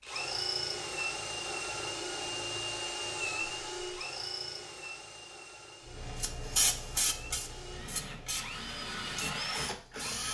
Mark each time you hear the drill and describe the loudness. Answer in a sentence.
The drill can be heard from 0.0 to 10.2 s, getting quieter then louder.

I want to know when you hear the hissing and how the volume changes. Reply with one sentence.
The hissing can be heard from 6.0 to 10.1 s, getting quieter.